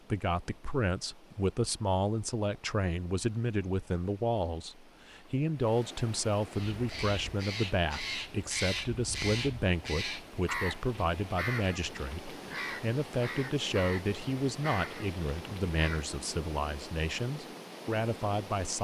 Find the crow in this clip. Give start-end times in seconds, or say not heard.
6.5-16.1.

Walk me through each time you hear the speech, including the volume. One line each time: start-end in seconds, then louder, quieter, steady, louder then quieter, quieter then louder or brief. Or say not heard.
0.1-18.8 steady.